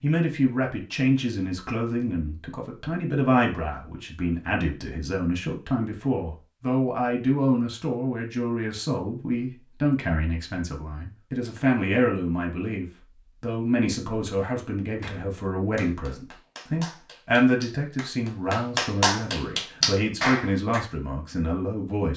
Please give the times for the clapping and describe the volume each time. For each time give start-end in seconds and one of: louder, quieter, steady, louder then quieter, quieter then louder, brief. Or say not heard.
14.3-20.8 louder.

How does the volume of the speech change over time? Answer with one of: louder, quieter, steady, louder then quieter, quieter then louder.
steady.